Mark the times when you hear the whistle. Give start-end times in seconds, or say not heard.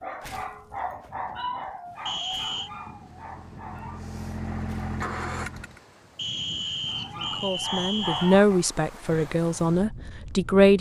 2.0-2.7, 6.2-8.4.